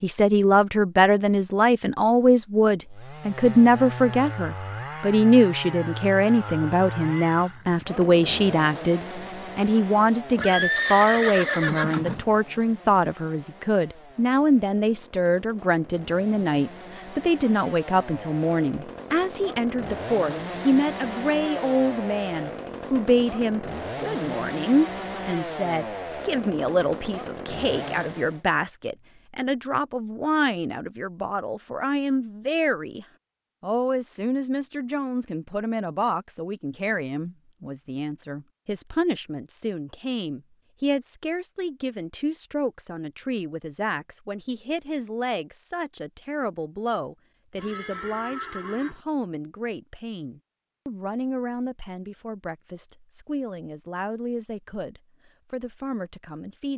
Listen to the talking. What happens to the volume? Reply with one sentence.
The loudness of the talking goes down.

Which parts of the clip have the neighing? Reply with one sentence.
The neighing can be heard from 10.3 to 12.2 s and from 47.5 to 49.0 s.